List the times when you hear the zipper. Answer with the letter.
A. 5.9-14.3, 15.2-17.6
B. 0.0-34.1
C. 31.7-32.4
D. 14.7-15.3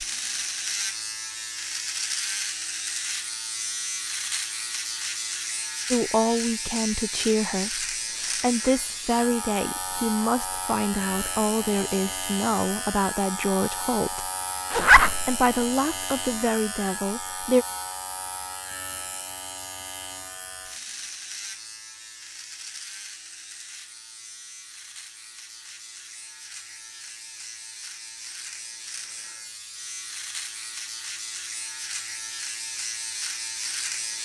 D.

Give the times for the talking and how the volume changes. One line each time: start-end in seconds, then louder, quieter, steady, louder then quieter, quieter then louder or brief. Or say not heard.
5.9-14.3 steady
15.2-17.6 brief.